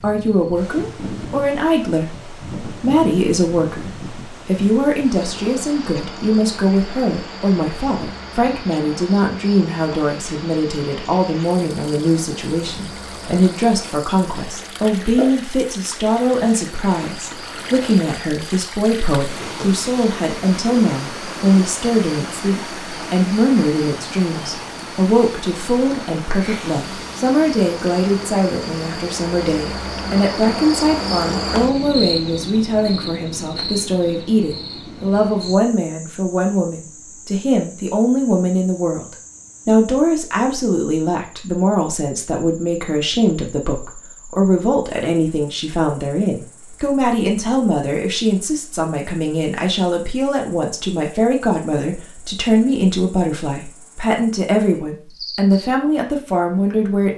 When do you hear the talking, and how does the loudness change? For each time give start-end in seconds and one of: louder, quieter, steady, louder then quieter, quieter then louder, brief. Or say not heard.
0.0-57.1 steady.